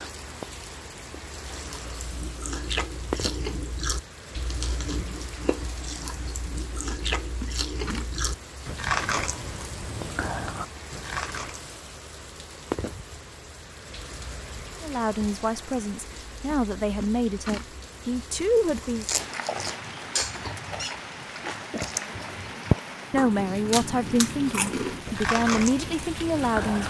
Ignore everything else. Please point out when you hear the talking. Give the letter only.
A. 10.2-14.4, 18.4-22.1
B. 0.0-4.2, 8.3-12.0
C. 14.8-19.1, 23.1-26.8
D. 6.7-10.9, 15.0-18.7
C.